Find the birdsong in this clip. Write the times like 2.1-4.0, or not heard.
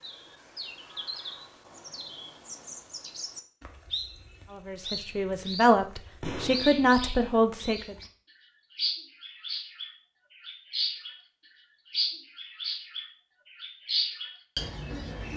0.0-8.1, 8.7-11.2, 11.9-15.3.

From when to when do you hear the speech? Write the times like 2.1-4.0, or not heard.
4.5-8.0.